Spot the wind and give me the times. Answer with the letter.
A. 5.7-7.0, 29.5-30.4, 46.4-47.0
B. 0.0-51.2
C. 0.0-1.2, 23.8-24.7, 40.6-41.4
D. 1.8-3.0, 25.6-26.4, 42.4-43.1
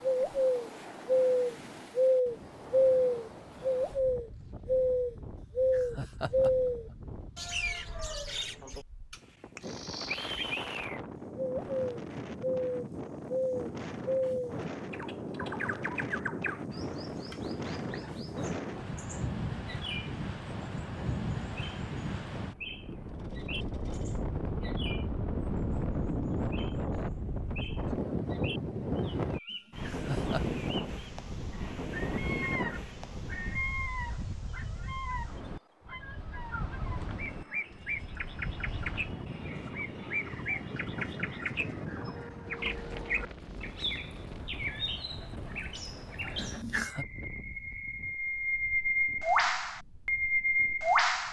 B.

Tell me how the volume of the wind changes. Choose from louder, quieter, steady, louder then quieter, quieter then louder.
louder then quieter.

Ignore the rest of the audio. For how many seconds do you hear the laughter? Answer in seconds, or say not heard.
3 s.